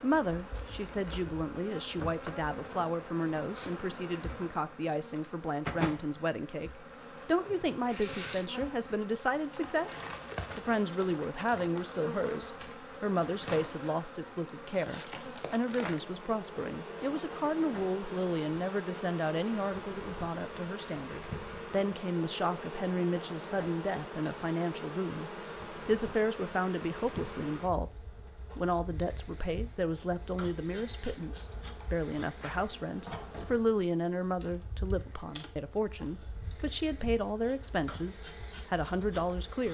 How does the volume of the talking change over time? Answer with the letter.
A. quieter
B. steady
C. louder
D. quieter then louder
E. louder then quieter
B.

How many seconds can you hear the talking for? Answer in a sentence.
The talking can be heard for 39 seconds in total.